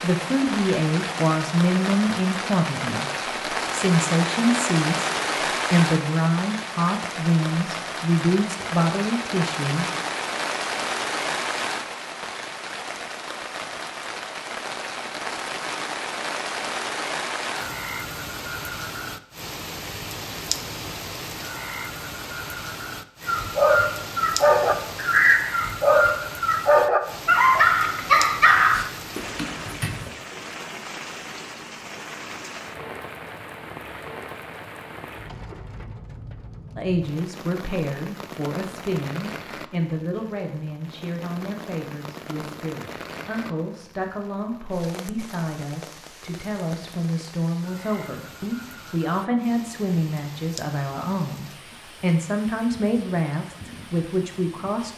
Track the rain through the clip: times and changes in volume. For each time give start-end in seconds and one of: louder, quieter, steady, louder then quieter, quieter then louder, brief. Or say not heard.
0.0-54.9 quieter.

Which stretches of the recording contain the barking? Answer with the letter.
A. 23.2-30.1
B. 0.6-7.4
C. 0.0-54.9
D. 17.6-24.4
A.